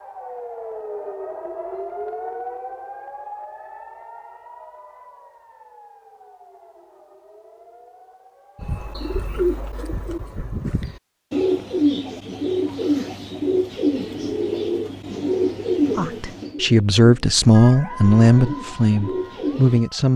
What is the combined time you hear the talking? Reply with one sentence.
You can hear the talking for 4 seconds altogether.